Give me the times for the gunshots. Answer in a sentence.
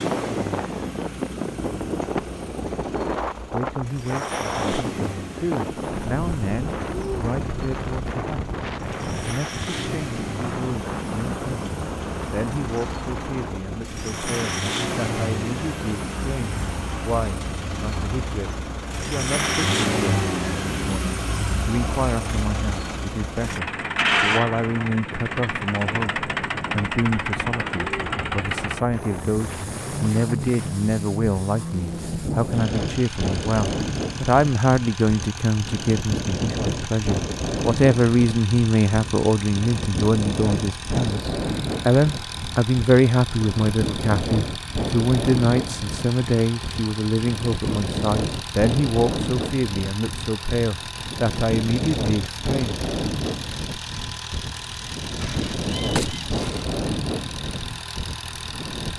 You can hear the gunshots from 55.2 to 56.6 s.